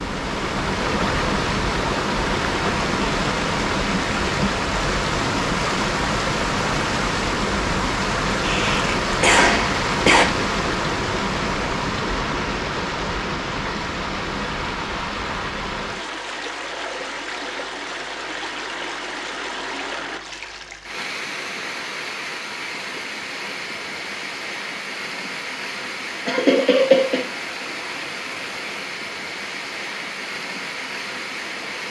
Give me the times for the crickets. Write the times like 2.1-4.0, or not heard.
not heard.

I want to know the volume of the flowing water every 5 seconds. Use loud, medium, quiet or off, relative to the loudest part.
loud, loud, loud, medium, medium, medium, medium.